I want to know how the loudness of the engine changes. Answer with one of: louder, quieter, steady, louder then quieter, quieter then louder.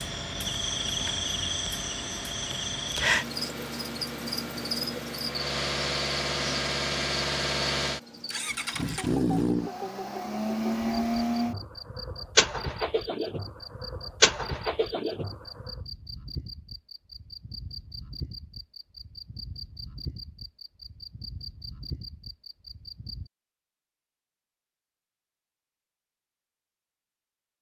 louder.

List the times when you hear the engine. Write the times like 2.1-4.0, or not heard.
0.0-15.8.